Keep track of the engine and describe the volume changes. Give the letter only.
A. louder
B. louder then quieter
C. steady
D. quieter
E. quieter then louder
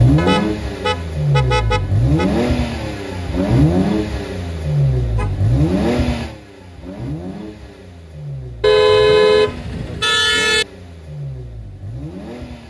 D.